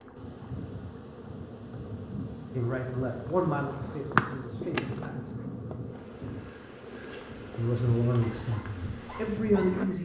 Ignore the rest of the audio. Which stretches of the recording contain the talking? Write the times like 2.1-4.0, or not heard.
2.5-5.3, 7.5-9.9.